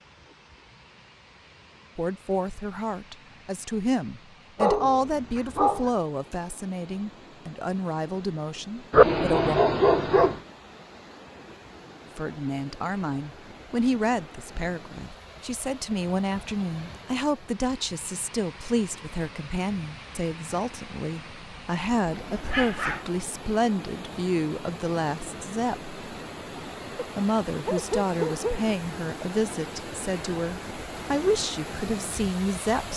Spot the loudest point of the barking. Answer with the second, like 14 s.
9 s.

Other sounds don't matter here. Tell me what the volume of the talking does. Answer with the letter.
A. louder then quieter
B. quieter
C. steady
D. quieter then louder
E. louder
C.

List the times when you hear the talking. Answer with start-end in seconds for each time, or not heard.
1.9-9.6, 12.2-25.9, 27.1-32.9.